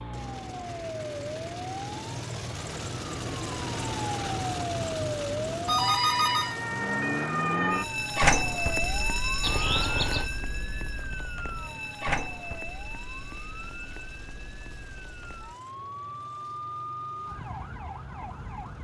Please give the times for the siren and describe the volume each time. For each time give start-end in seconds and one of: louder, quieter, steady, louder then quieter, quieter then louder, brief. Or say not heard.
0.0-18.7 louder then quieter.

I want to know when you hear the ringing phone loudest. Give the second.
6 s.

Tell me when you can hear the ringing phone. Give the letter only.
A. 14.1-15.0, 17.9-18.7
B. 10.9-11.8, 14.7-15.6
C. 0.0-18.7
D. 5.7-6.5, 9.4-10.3
D.